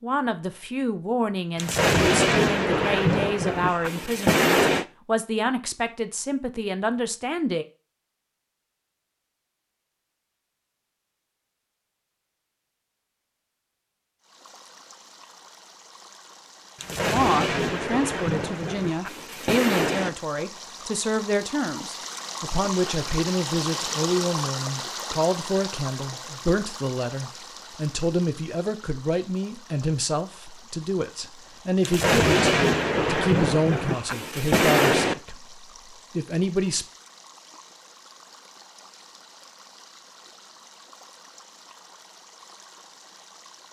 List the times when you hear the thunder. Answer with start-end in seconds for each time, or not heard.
1.6-4.8, 16.8-20.1, 31.8-35.1.